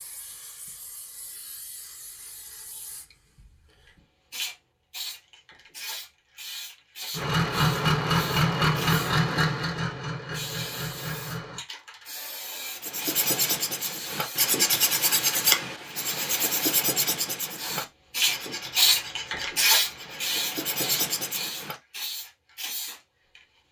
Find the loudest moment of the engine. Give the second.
8 s.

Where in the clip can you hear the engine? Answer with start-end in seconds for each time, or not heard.
7.1-11.6.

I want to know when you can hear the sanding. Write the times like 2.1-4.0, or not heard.
12.7-21.8.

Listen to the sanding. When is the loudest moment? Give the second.
15 s.